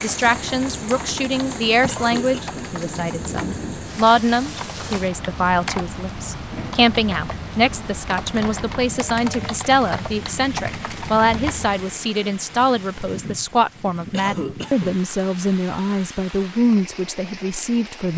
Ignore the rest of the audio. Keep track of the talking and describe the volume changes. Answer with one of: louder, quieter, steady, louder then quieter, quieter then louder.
steady.